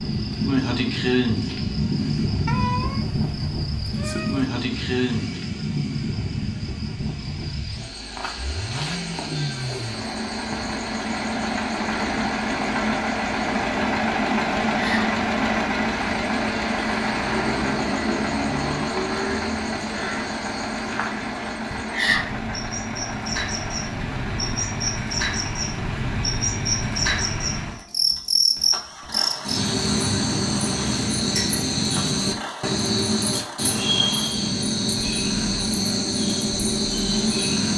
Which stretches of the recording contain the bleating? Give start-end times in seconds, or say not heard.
not heard.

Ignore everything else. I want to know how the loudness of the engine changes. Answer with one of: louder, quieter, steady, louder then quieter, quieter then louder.
louder then quieter.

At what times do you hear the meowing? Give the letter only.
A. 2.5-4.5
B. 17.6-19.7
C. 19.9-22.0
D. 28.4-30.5
A.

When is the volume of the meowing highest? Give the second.
3 s.